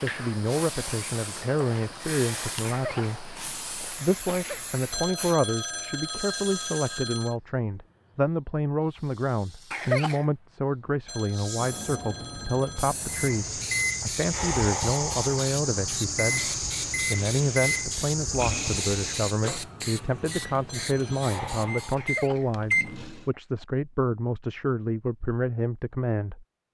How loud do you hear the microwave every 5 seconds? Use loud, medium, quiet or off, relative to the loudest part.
off, off, loud, loud, loud, off.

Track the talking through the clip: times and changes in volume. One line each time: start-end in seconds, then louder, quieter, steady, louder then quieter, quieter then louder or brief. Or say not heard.
0.0-26.4 steady.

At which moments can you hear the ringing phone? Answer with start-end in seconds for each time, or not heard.
4.9-7.3, 11.1-13.0, 20.6-21.4.